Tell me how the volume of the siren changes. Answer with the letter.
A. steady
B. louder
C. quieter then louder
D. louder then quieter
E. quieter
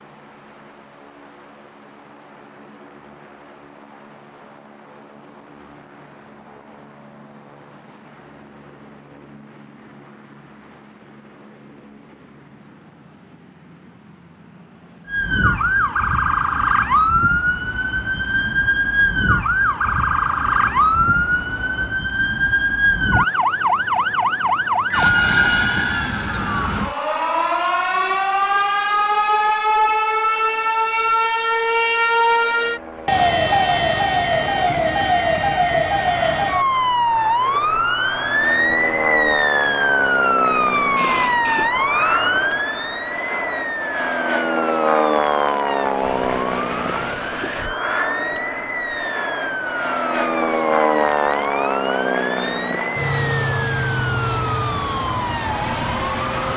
E.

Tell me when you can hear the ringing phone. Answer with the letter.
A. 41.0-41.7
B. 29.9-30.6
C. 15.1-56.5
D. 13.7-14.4
A.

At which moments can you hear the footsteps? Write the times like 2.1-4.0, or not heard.
not heard.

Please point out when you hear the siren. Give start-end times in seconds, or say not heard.
15.1-56.5.